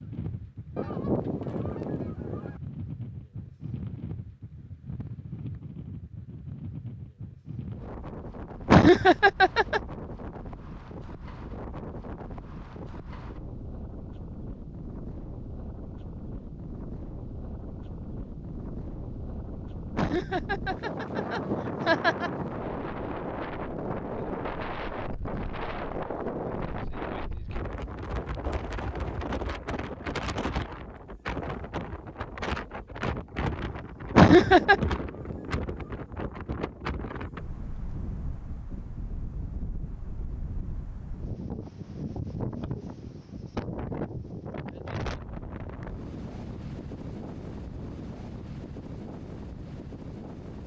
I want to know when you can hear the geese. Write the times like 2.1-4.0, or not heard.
0.8-2.6, 21.1-22.8, 34.4-36.1.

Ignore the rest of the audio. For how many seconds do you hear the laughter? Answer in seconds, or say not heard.
4 s.